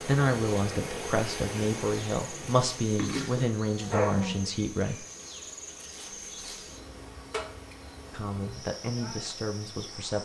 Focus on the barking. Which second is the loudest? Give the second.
4 s.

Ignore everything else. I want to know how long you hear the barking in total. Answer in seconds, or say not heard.
2 s.